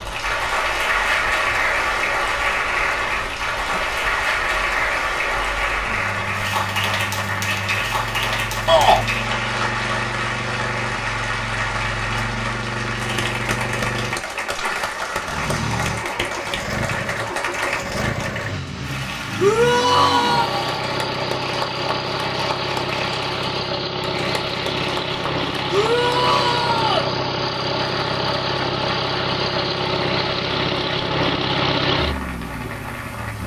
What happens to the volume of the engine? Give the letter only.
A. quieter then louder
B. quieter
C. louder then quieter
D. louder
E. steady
D.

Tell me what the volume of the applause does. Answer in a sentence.
The volume of the applause goes down.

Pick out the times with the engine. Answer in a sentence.
You can hear the engine from 0.0 to 33.4 s.